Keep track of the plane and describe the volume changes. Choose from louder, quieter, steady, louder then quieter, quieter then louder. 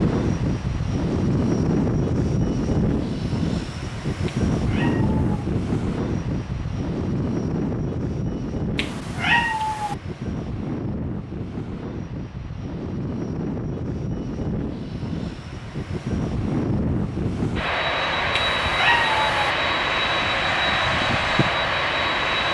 quieter then louder.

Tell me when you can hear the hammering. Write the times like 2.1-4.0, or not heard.
not heard.